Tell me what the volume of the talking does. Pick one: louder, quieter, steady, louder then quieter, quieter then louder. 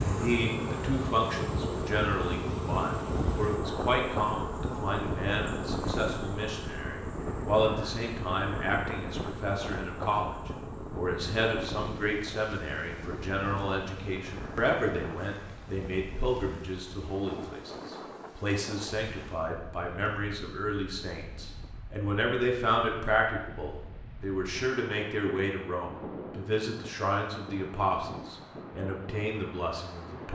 steady.